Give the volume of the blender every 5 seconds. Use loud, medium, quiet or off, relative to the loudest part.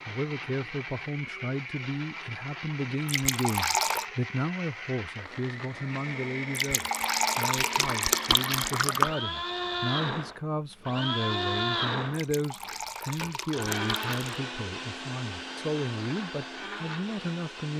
medium, loud, loud, medium.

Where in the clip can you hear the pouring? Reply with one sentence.
The pouring can be heard from 3.0 to 4.0 s, from 6.5 to 9.2 s and from 12.1 to 14.4 s.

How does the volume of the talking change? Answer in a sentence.
The loudness of the talking stays about the same.